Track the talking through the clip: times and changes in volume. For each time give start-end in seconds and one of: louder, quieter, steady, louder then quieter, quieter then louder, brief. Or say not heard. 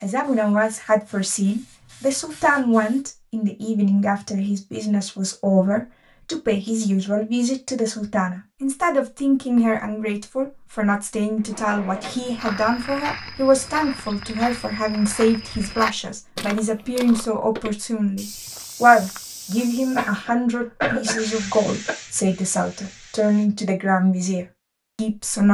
0.0-25.4 steady.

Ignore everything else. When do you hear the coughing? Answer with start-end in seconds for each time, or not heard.
19.9-21.9.